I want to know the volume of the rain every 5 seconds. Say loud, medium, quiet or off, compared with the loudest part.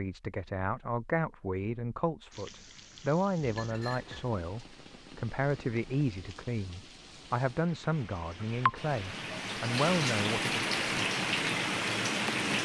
quiet, medium, loud.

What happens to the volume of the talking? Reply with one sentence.
The loudness of the talking stays about the same.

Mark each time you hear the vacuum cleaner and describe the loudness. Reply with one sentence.
You can't hear the vacuum cleaner here.